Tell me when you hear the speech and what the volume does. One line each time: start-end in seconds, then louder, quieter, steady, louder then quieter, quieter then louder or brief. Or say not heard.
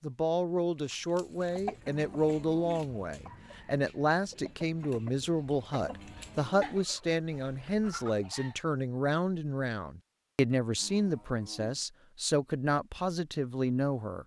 0.0-14.2 steady.